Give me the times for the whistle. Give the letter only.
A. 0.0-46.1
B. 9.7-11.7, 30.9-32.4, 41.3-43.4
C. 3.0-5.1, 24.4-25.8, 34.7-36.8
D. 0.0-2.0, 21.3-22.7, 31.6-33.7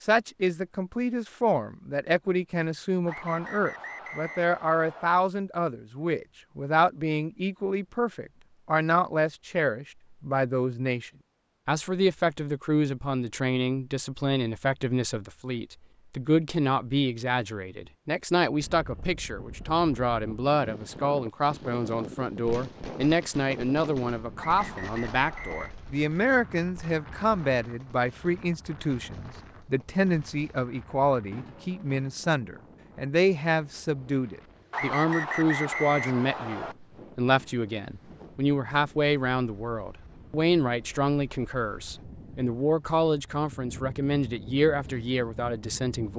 C.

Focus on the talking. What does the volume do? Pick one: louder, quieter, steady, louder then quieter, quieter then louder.
steady.